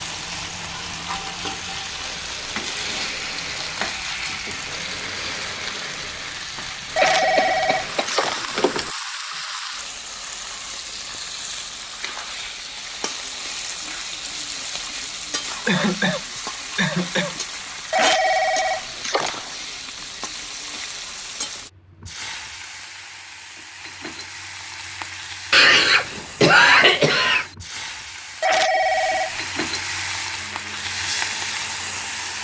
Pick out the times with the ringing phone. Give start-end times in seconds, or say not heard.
7.0-8.9, 17.9-19.5, 28.4-29.4.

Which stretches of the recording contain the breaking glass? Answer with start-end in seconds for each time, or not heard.
not heard.